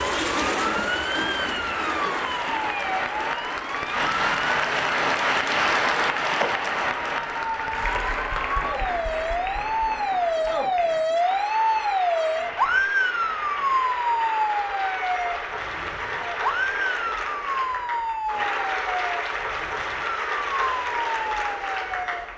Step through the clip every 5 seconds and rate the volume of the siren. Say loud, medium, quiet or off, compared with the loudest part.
medium, medium, loud, medium, medium.